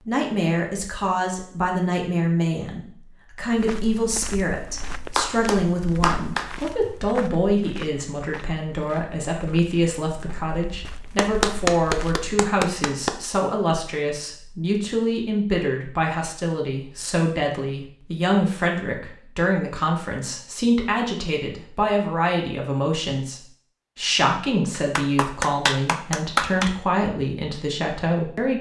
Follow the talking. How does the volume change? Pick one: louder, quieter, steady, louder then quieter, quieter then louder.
steady.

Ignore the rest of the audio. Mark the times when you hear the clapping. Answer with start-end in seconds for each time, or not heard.
5.2-6.5, 11.2-13.2, 24.7-26.8.